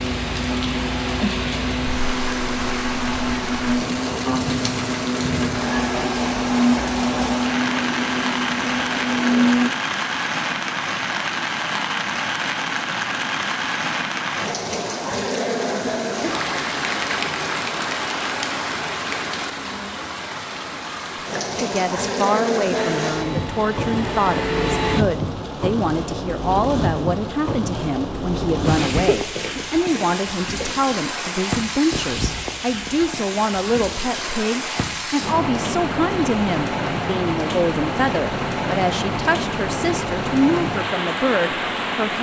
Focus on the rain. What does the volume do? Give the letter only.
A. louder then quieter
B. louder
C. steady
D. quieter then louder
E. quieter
C.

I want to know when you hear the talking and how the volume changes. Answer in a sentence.
The talking can be heard from 21.4 to 42.1 s, at a steady volume.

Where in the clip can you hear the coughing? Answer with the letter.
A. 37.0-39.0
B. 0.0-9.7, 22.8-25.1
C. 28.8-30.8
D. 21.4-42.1
C.